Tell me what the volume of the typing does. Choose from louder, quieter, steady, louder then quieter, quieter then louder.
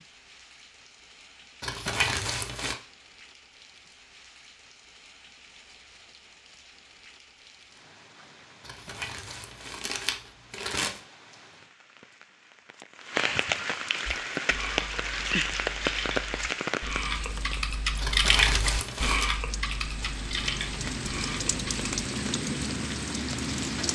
louder then quieter.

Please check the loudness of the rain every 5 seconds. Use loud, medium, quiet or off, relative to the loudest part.
quiet, quiet, loud, loud, loud.